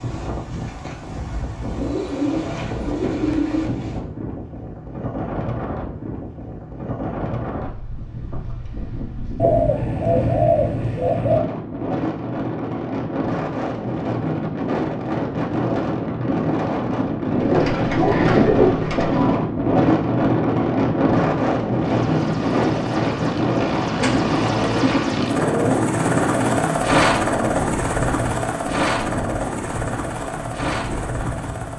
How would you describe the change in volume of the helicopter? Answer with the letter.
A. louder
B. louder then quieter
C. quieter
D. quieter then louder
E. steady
B.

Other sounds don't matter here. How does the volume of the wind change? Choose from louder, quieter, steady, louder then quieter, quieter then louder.
louder then quieter.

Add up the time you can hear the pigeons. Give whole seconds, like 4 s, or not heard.
8 s.